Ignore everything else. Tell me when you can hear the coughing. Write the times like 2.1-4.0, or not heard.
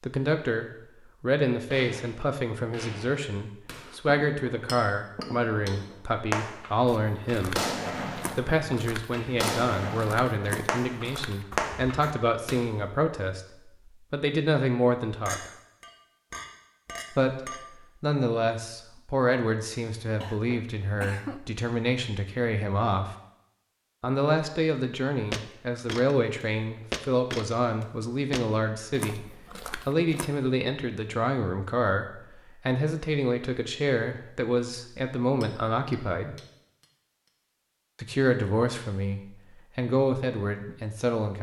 20.2-21.4.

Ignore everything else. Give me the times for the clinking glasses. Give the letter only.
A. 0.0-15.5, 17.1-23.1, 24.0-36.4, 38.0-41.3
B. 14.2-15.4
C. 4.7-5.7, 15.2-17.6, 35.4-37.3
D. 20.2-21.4
C.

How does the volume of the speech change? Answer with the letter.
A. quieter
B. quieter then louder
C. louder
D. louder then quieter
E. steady
E.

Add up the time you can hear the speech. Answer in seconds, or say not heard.
37 s.